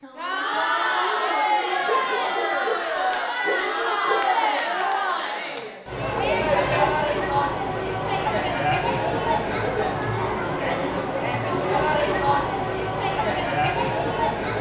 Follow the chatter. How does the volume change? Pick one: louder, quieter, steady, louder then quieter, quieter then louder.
steady.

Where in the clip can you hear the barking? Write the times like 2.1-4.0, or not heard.
1.9-4.3.